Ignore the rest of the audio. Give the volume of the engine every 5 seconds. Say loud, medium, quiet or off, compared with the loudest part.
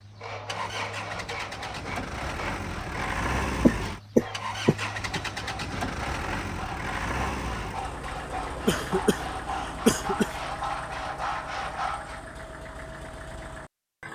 loud, loud, medium.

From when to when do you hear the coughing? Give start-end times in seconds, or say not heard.
3.6-5.2, 8.7-10.3.